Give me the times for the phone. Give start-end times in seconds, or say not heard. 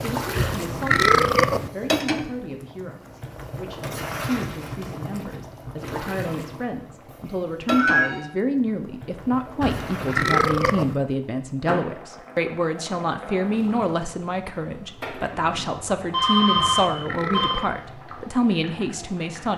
7.7-8.2, 15.3-17.6.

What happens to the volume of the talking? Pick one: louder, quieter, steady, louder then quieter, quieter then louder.
louder.